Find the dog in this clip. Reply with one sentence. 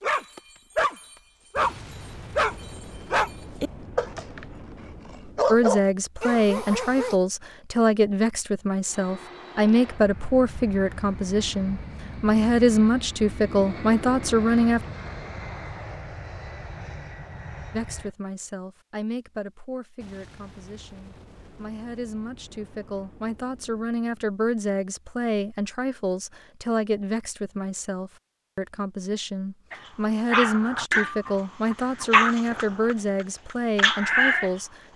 You can hear the dog from 0.0 to 1.8 s, from 2.4 to 7.2 s and from 29.7 to 34.5 s.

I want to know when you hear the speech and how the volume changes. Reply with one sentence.
The speech can be heard from 5.5 to 14.8 s, at a steady volume; and from 17.7 to 34.8 s, getting louder.